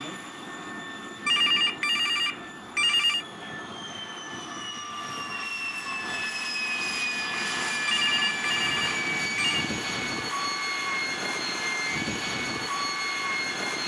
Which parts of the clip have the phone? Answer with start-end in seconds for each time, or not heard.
1.2-3.2, 7.8-9.7.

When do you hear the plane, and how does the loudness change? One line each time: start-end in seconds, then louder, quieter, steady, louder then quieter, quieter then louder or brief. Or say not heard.
0.0-13.8 louder.